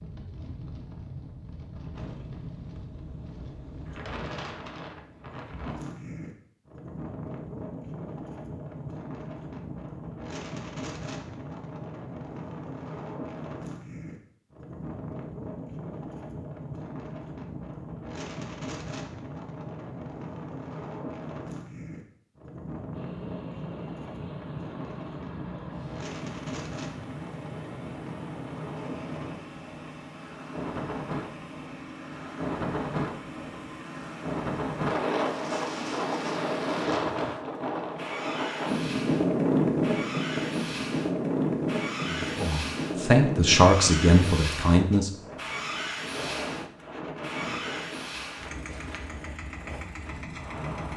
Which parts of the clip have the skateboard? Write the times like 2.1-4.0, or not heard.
not heard.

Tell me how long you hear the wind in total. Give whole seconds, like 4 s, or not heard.
51 s.